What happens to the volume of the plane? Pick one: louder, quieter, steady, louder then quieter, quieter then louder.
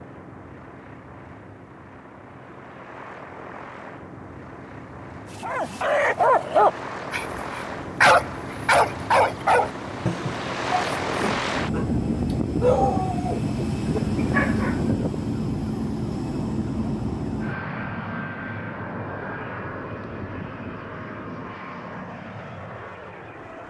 louder then quieter.